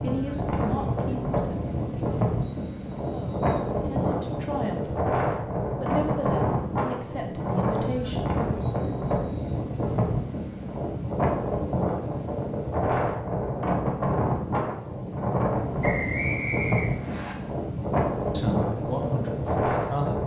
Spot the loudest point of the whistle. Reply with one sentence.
The loudest moment of the whistle is at 16 seconds.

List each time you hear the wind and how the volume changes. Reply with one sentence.
You can hear the wind from 0.0 to 20.2 s, at a steady volume.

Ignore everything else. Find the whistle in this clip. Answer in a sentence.
You can hear the whistle from 2.4 to 3.7 s, from 8.6 to 9.6 s and from 15.8 to 17.4 s.